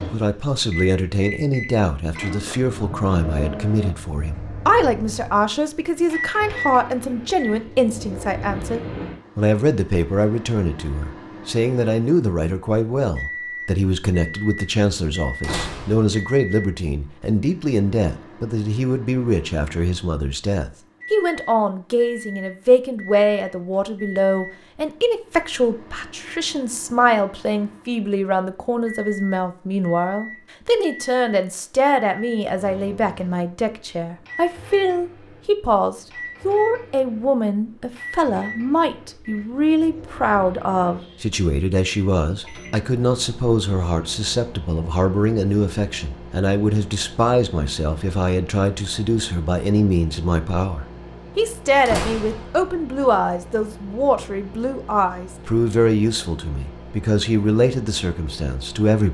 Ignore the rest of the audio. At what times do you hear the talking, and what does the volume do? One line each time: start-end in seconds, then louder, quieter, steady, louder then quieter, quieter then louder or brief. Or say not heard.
0.1-59.0 steady.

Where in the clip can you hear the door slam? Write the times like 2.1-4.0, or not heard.
15.4-16.1, 51.9-52.8.